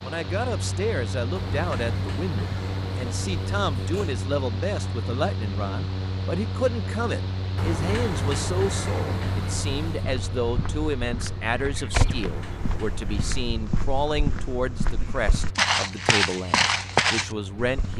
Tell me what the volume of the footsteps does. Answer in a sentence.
The loudness of the footsteps goes down, then up.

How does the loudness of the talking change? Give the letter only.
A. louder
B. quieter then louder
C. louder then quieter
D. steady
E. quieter
D.